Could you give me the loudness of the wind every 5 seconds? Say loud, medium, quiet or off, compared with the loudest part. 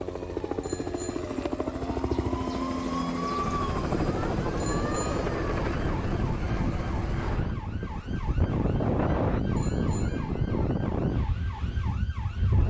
medium, loud, loud.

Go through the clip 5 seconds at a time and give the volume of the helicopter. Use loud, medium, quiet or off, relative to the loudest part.
loud, loud, off.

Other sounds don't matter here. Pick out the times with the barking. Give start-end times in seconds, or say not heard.
not heard.